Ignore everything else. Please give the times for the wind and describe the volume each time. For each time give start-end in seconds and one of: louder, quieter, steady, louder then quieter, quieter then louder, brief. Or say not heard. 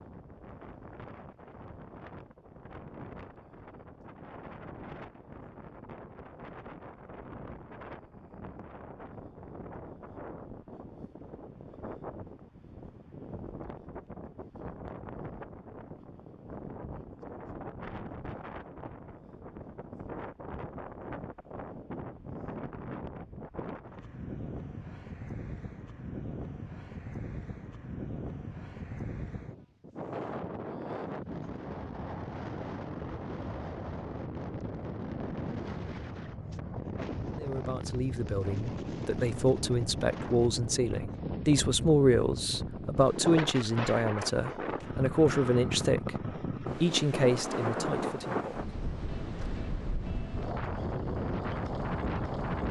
0.0-52.6 louder.